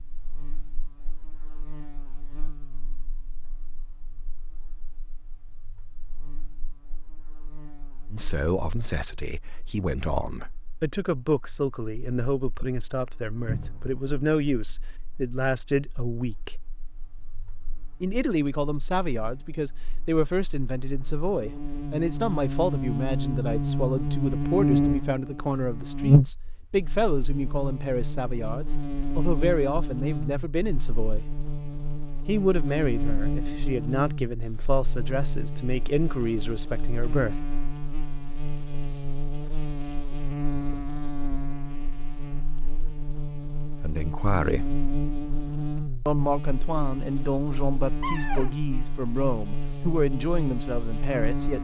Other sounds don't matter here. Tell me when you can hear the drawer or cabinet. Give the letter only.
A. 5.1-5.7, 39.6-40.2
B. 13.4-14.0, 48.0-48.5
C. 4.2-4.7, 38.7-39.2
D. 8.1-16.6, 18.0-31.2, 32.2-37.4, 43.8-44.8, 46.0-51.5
B.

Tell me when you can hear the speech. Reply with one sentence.
The speech can be heard from 8.1 to 16.6 s, from 18.0 to 31.2 s, from 32.2 to 37.4 s, from 43.8 to 44.8 s and from 46.0 to 51.5 s.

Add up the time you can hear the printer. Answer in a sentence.
The printer can't be heard in this clip.